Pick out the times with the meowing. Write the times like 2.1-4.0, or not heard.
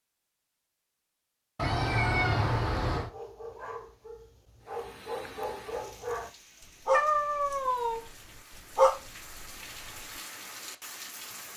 1.6-3.1, 6.9-8.1.